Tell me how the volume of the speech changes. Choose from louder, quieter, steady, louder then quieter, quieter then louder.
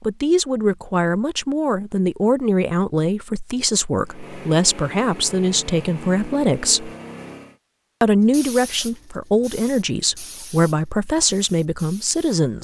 steady.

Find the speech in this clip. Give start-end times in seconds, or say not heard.
0.0-6.9, 8.0-12.5.